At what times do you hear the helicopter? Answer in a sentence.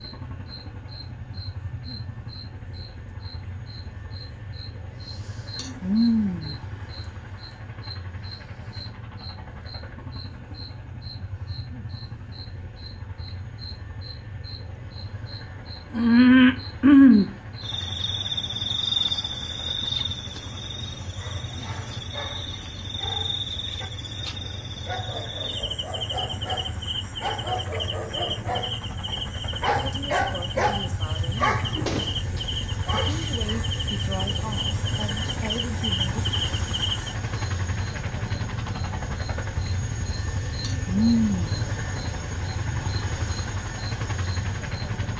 The helicopter can be heard from 0.0 to 45.1 s.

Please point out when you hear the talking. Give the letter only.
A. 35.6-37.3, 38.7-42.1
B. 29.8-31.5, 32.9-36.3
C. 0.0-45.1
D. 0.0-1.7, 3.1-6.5
B.